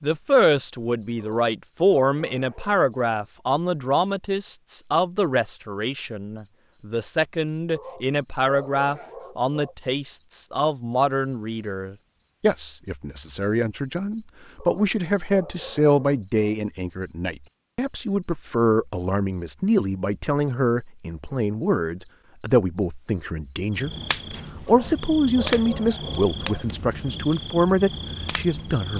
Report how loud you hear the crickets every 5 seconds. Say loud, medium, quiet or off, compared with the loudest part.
loud, loud, loud, loud, loud, medium.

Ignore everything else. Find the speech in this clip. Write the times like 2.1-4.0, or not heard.
0.0-23.9, 24.6-28.9.